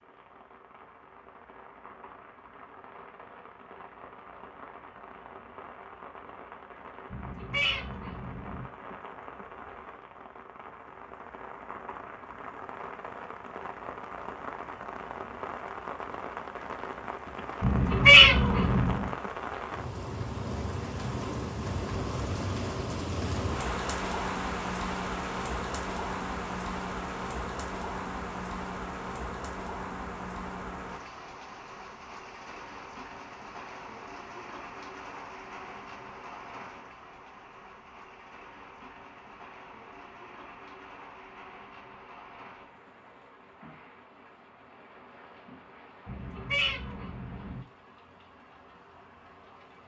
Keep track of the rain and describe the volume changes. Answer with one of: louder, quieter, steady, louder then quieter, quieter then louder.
louder then quieter.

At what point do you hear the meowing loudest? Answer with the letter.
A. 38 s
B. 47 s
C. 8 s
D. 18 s
D.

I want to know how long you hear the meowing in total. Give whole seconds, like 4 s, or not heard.
5 s.